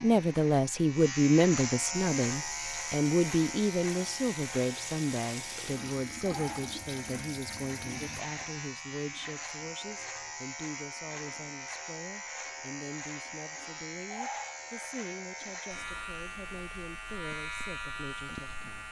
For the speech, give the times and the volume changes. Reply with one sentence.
You can hear the speech from 0.0 to 18.8 s, getting quieter.